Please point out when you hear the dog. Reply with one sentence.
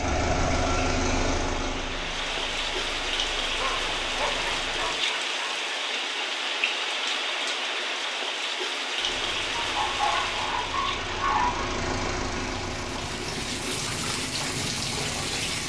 The dog can be heard from 3.5 to 5.8 s and from 9.6 to 11.7 s.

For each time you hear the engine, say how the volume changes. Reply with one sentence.
You can hear the engine from 0.0 to 5.0 s, getting quieter; and from 8.9 to 15.6 s, getting louder then quieter.